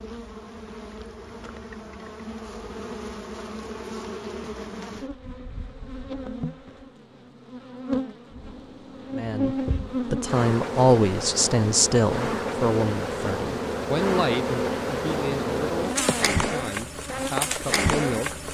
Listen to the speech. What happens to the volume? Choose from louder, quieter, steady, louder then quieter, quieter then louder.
quieter.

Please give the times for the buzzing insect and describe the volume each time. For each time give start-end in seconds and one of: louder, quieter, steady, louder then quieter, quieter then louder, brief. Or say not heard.
0.0-18.4 louder.